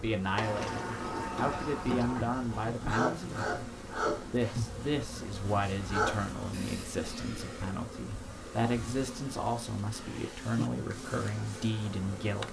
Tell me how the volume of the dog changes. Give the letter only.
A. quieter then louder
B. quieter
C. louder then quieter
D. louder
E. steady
C.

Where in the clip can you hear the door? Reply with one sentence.
You can hear the door from 0.3 to 2.3 s.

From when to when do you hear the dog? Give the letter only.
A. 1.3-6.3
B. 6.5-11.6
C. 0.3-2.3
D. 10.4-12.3
A.